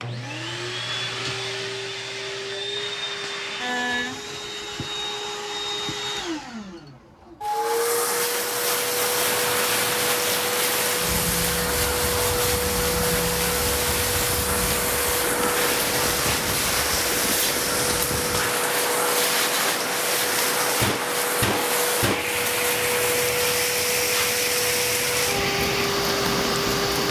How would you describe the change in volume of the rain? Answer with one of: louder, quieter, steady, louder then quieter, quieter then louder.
steady.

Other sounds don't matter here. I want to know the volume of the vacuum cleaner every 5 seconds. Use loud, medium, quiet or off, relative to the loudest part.
medium, loud, loud, loud, loud, loud.